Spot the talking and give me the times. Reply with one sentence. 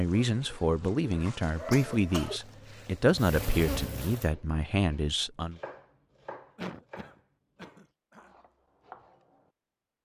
You can hear the talking from 0.0 to 5.6 s.